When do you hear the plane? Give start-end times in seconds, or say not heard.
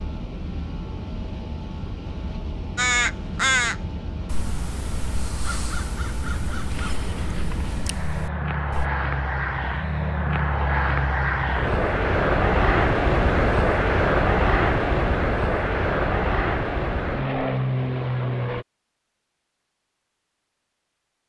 0.0-18.6.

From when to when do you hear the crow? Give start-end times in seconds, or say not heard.
2.8-8.8.